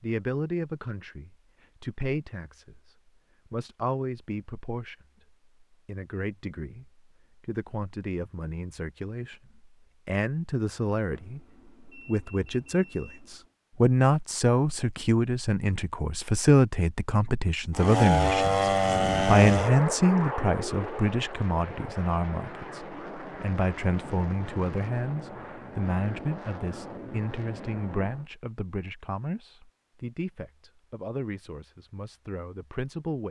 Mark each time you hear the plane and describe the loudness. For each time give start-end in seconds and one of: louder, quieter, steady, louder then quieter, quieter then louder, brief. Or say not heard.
17.8-28.2 quieter.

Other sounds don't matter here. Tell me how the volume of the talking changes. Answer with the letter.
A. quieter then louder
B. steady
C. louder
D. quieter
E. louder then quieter
E.